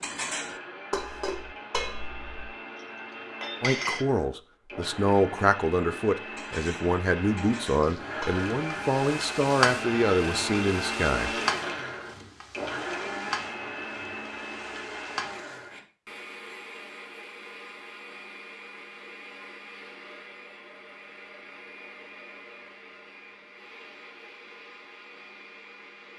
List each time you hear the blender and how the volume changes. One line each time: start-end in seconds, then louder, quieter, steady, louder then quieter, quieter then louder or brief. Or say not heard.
0.1-26.1 louder then quieter.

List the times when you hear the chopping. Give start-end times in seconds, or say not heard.
not heard.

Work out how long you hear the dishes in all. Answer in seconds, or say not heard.
6 s.